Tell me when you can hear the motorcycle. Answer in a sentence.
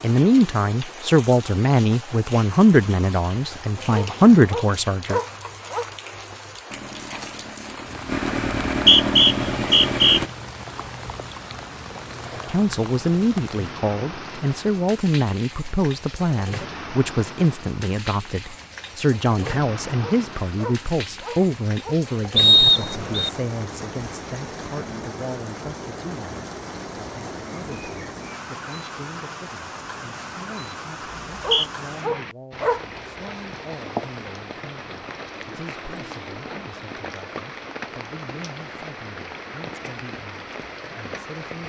You can hear the motorcycle from 6.7 to 10.3 s.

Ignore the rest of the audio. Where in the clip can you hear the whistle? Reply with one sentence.
You can hear the whistle from 8.7 to 10.2 s, from 22.4 to 23.3 s and from 31.2 to 31.7 s.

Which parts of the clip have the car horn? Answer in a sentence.
The car horn can't be heard in this clip.